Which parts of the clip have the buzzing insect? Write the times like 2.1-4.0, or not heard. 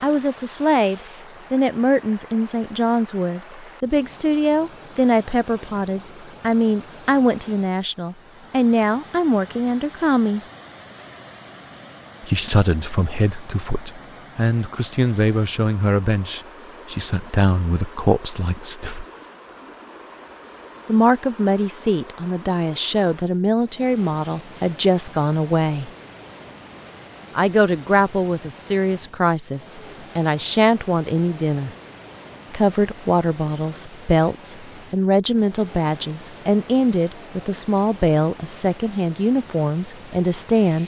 not heard.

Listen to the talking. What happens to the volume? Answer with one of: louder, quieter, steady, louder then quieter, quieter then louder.
steady.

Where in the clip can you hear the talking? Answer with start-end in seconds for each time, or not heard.
0.0-10.4, 12.2-19.1, 20.9-25.9, 27.4-31.7, 32.5-40.8.